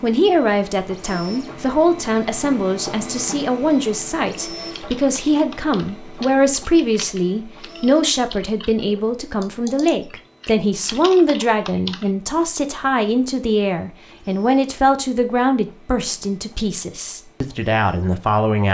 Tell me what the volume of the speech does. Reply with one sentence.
The volume of the speech stays about the same.